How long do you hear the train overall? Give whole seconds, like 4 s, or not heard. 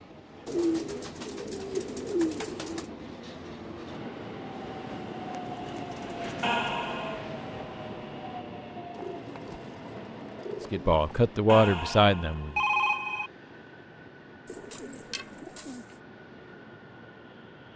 18 s.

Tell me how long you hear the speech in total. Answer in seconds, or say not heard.
2 s.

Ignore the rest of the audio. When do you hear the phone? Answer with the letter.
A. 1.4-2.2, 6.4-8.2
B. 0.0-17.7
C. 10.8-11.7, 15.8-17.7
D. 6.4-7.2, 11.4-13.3
D.